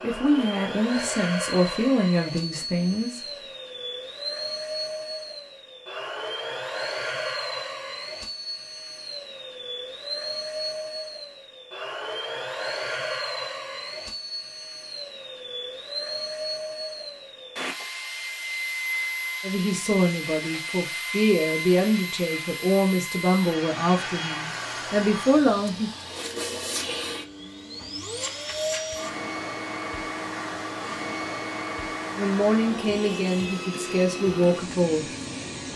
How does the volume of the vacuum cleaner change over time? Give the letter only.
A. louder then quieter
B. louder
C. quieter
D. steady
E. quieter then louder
D.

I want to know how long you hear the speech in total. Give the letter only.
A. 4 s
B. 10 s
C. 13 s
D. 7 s
C.